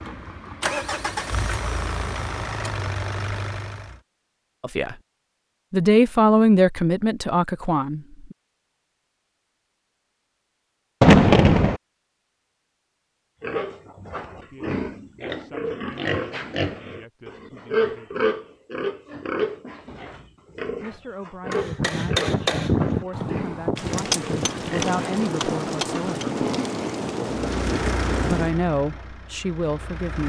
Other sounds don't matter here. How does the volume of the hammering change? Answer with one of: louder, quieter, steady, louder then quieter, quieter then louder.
quieter.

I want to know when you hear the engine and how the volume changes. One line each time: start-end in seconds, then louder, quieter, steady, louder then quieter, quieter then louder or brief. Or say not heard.
0.0-4.0 steady
27.3-30.2 brief.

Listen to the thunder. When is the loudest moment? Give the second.
11 s.